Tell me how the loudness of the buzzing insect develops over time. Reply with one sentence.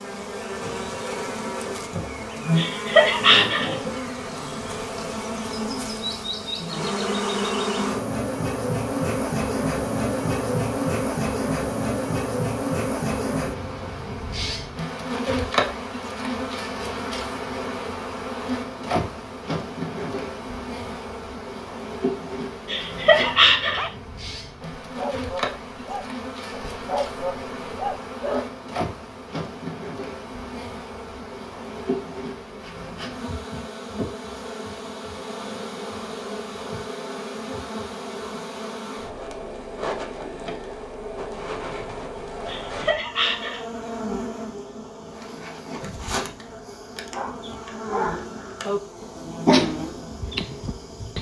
The loudness of the buzzing insect goes down.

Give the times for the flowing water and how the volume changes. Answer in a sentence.
You can't hear the flowing water here.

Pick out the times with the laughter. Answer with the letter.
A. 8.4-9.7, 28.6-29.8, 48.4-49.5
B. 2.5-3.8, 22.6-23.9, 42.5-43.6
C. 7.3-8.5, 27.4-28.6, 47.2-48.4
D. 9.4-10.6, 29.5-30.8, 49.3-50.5
B.